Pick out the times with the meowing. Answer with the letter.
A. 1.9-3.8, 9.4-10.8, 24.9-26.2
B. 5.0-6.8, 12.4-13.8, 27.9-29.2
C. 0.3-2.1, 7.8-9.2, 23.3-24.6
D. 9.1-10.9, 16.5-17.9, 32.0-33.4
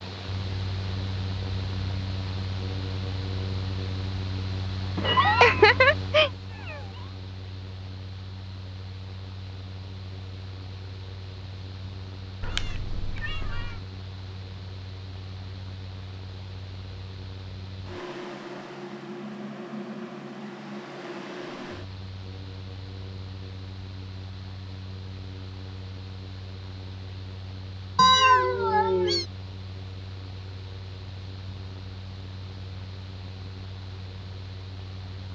B.